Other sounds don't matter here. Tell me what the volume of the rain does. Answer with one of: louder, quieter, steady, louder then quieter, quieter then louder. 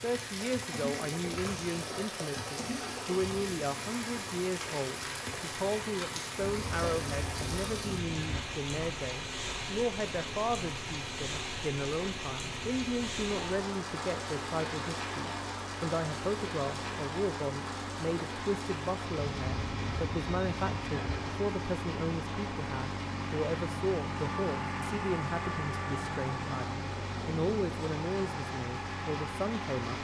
quieter.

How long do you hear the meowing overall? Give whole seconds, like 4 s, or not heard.
4 s.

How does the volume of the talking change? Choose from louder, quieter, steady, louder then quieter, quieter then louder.
steady.